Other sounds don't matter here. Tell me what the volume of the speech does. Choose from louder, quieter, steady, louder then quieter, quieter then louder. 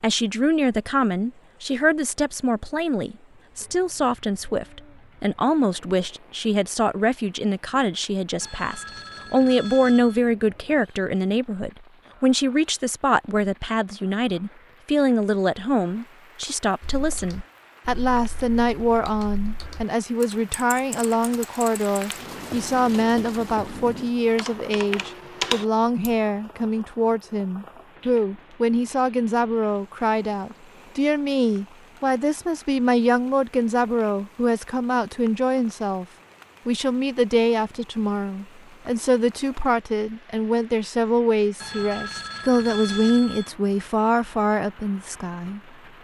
steady.